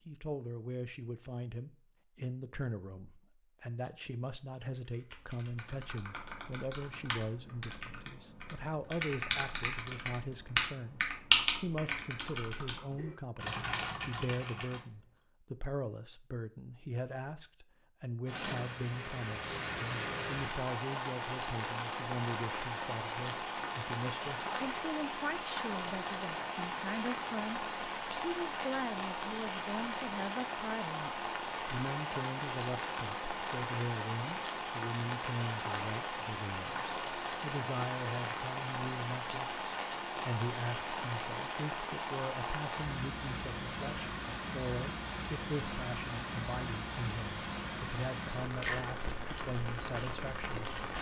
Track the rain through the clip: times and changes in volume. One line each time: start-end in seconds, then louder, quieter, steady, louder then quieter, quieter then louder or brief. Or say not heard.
18.2-50.9 steady.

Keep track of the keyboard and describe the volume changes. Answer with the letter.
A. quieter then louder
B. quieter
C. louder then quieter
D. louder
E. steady
C.